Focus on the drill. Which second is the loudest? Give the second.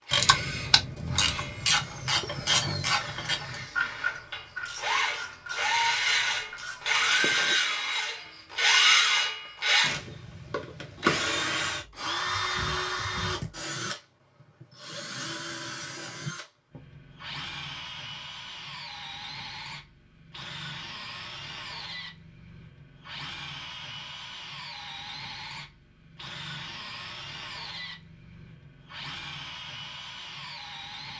9 s.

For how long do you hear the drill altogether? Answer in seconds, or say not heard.
31 s.